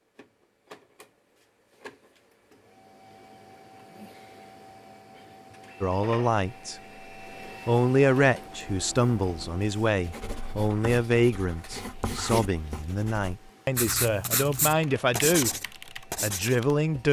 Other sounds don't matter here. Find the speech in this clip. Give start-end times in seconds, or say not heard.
5.8-6.8, 7.7-17.0.